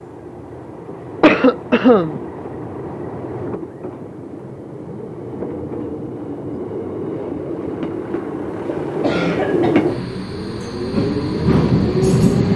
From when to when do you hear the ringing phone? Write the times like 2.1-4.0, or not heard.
not heard.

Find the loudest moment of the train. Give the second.
12 s.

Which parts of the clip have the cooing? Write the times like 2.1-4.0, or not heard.
not heard.